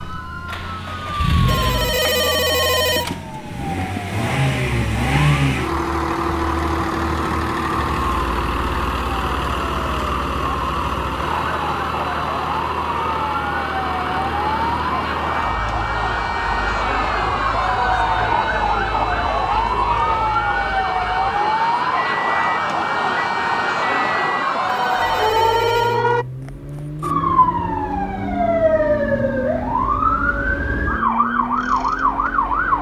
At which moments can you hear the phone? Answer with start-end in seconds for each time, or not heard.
1.4-3.0, 24.6-26.0.